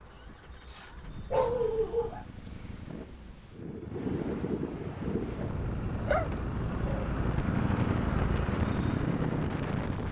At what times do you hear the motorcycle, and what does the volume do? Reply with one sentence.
The motorcycle can be heard from 0.0 to 10.0 s, getting louder.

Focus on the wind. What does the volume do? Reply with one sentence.
The volume of the wind goes up.